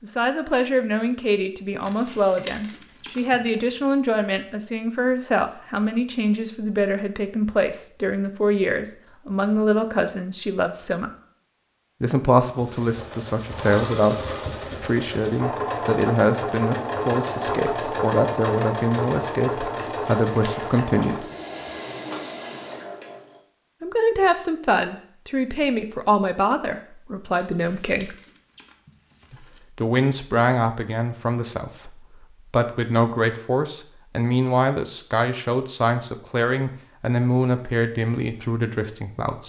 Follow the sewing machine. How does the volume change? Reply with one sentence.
The loudness of the sewing machine goes up, then down.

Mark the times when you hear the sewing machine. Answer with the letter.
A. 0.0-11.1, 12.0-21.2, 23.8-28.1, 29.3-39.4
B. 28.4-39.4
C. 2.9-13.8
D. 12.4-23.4
D.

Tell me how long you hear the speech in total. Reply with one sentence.
You can hear the speech for 35 seconds altogether.